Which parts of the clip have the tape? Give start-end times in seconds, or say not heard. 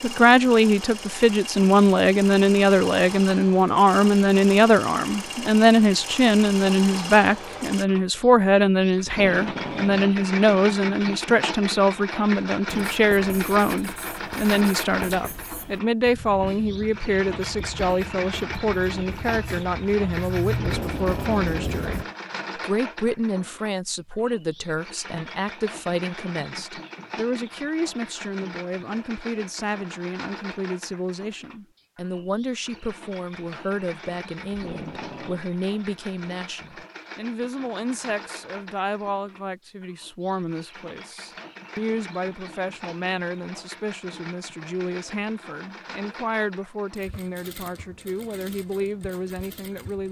9.1-10.1, 20.6-22.1, 34.5-35.5.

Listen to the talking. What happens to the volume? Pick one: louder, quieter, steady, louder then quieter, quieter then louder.
quieter.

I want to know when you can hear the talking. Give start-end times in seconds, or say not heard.
0.0-50.0.